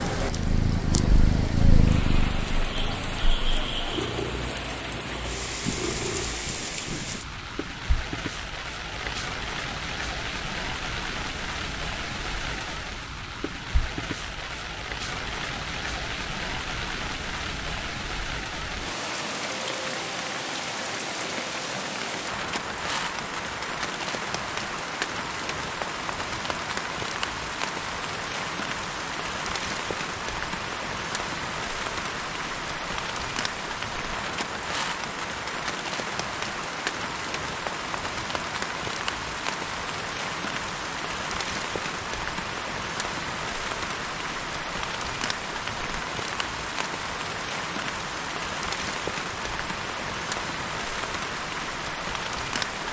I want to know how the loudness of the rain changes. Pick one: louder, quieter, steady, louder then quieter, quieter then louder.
steady.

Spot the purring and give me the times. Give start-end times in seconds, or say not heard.
0.1-6.5.